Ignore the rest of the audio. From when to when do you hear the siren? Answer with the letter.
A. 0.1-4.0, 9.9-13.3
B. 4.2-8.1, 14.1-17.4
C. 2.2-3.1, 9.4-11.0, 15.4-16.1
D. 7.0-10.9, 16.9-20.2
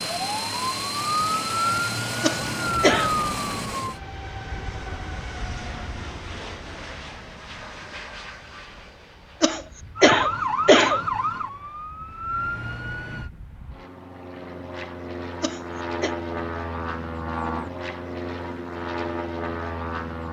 A.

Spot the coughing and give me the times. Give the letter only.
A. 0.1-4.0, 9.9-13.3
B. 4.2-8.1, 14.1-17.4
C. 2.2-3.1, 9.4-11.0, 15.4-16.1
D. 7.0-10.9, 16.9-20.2
C.